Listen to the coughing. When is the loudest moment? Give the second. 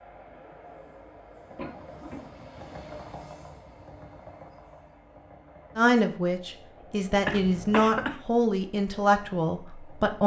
8 s.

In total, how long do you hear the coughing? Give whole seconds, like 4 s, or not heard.
2 s.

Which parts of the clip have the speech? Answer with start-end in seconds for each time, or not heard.
5.8-10.2.